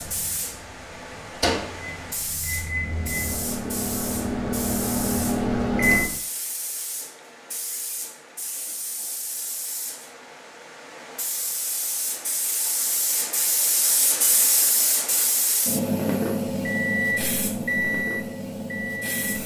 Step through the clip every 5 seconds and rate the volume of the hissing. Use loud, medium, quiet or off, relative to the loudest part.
medium, medium, loud, loud.